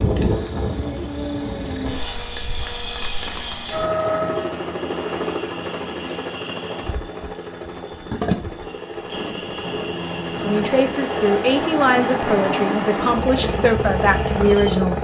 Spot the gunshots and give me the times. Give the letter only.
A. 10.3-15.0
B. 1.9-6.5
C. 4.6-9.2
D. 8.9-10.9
D.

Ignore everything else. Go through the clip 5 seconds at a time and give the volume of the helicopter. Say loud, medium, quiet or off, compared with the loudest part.
loud, medium, loud.